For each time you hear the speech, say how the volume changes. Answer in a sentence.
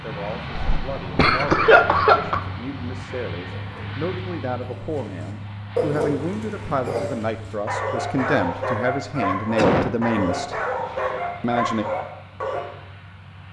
The speech can be heard from 0.0 to 10.6 s, getting louder; and briefly from 11.4 to 11.8 s.